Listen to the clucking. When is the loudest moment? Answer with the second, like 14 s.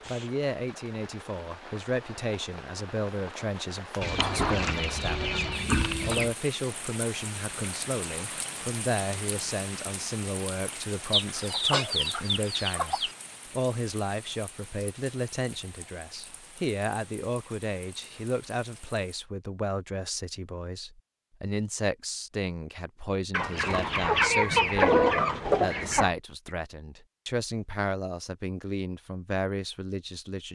25 s.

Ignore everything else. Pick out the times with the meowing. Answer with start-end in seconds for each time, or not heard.
not heard.